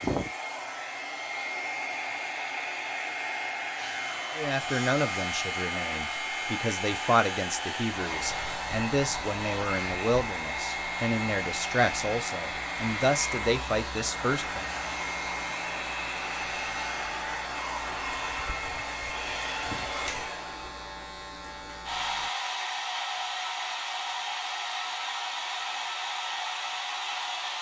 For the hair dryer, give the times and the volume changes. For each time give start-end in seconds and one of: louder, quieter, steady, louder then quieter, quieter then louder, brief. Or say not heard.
0.0-27.5 steady.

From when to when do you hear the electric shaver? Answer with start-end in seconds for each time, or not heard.
3.8-22.3.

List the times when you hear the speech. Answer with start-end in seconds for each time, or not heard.
4.3-14.7.